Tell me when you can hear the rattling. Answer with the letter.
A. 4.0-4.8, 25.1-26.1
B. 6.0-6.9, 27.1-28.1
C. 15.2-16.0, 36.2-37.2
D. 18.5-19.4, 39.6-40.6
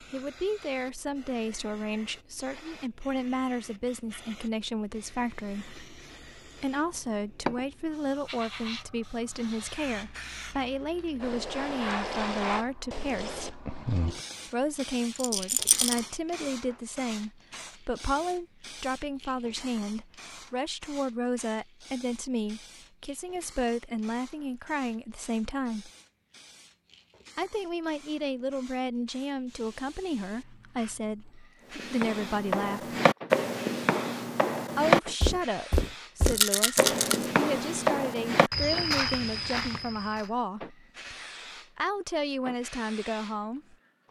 C.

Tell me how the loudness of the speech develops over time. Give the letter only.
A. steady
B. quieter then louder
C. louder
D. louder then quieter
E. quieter
A.